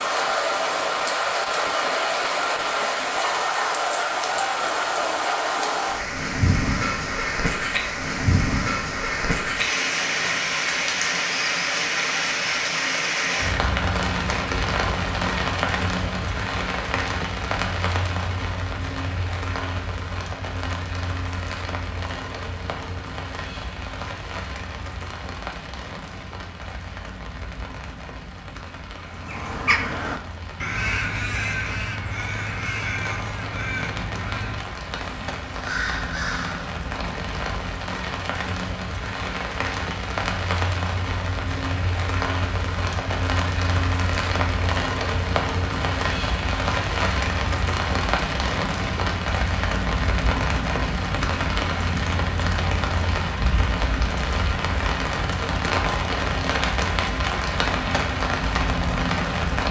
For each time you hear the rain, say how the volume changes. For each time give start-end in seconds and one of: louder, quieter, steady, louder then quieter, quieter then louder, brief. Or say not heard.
0.0-59.6 quieter then louder.